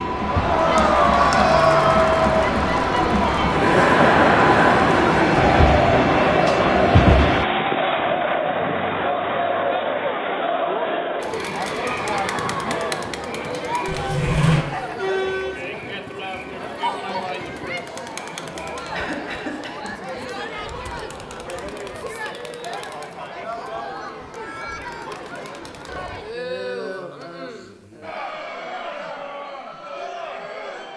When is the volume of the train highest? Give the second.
7 s.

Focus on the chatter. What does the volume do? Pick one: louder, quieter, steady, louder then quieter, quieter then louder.
quieter.